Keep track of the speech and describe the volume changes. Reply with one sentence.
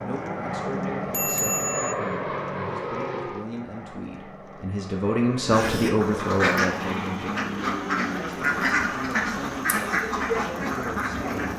The volume of the speech goes up, then down.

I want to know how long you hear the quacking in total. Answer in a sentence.
You can hear the quacking for 6 seconds altogether.